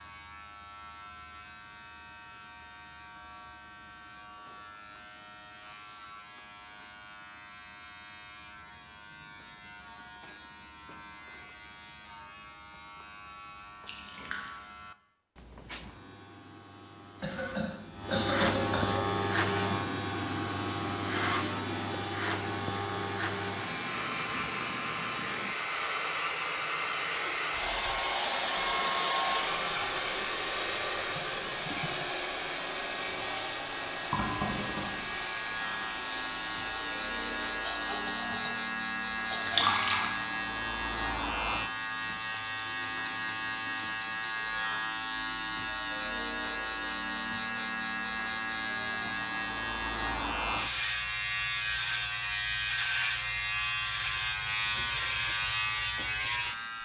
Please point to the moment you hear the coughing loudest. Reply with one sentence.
The loudest moment of the coughing is at 18 seconds.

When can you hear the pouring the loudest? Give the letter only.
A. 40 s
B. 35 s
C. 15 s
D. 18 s
A.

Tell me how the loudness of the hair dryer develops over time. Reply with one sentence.
The volume of the hair dryer goes up, then down.